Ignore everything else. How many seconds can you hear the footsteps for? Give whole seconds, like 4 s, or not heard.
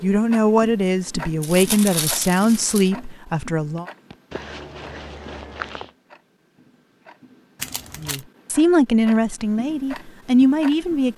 2 s.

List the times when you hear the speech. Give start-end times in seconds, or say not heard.
0.0-3.9, 8.0-11.1.